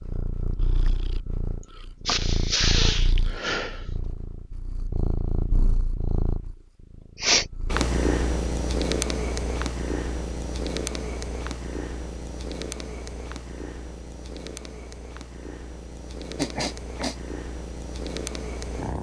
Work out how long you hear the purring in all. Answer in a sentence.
You can hear the purring for 19 seconds altogether.